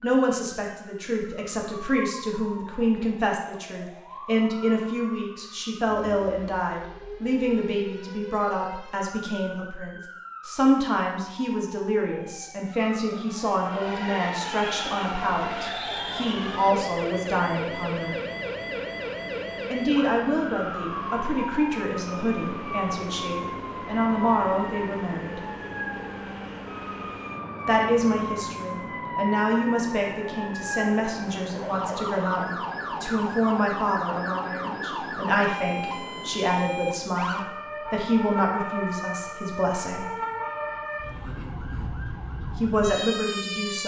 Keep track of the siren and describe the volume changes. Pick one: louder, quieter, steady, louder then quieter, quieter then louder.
louder.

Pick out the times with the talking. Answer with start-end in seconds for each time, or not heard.
0.0-18.1, 19.7-25.4, 27.6-40.0, 42.5-43.8.